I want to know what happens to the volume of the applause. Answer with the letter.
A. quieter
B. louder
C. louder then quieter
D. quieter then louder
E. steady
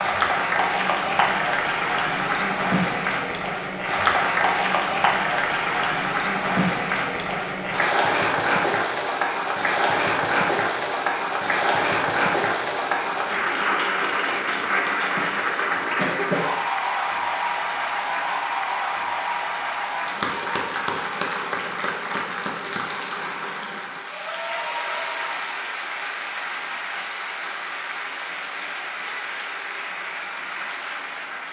A.